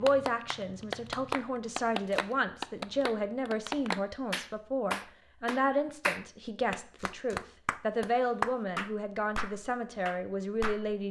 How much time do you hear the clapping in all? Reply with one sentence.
You can hear the clapping for 11 seconds altogether.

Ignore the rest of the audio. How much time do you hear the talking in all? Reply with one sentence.
You can hear the talking for 11 seconds altogether.